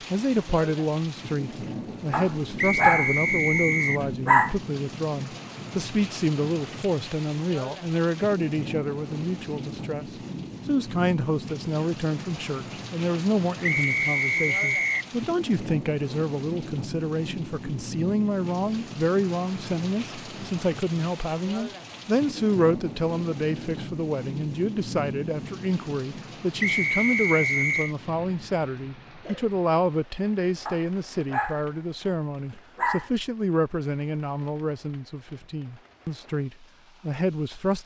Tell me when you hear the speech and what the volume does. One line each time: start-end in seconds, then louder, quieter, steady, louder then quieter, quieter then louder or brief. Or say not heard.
0.1-37.8 steady.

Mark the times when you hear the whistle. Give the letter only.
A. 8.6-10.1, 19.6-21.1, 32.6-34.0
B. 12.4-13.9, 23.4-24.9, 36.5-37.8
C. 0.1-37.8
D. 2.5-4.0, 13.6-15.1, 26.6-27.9
D.